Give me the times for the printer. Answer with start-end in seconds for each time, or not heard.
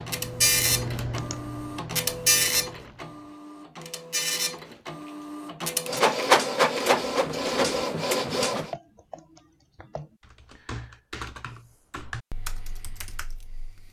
0.0-8.7.